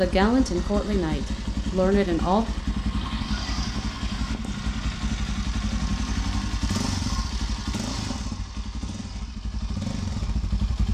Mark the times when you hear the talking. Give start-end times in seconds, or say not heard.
0.0-2.5.